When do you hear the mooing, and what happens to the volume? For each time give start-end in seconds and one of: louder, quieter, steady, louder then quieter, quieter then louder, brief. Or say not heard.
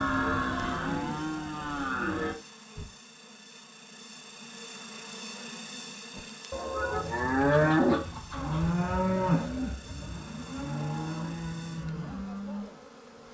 0.0-2.4 brief
6.2-12.7 quieter.